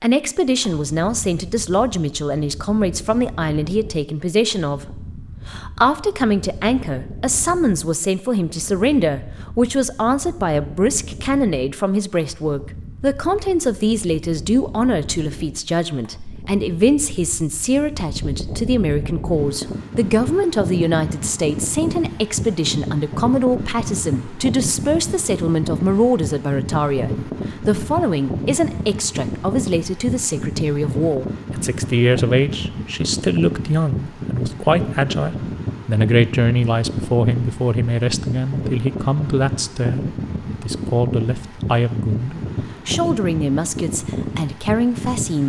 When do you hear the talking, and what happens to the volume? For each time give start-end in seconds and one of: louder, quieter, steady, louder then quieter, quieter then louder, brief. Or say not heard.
0.0-45.4 steady.